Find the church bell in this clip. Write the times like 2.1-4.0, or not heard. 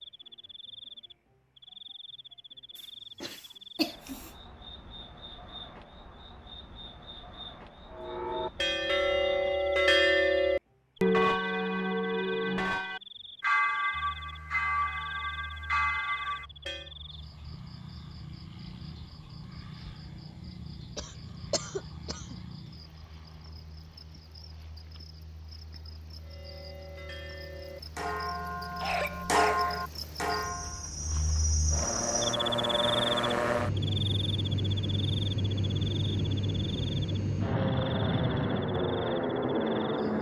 7.9-16.9, 26.2-30.9.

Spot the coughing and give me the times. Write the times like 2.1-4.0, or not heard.
3.2-4.3, 20.9-22.4, 28.8-29.9.